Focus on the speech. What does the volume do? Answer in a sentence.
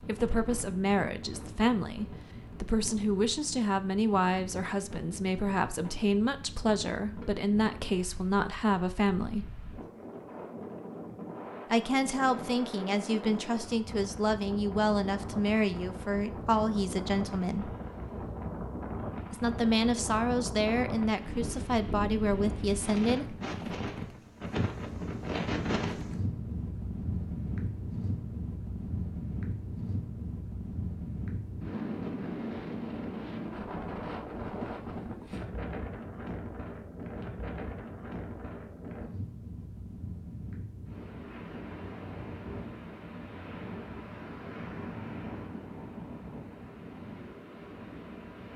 The loudness of the speech stays about the same.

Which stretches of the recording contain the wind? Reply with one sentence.
You can hear the wind from 0.0 to 48.5 s.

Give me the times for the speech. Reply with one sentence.
The speech can be heard from 0.0 to 9.4 s, from 11.7 to 17.8 s and from 19.3 to 23.4 s.